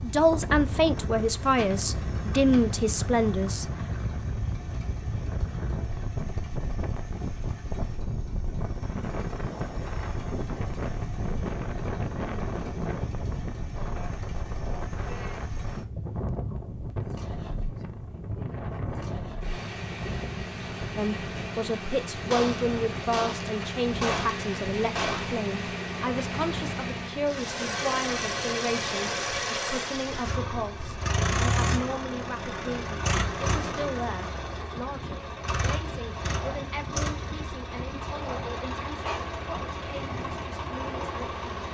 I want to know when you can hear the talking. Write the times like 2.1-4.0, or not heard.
0.0-3.6, 20.9-41.4.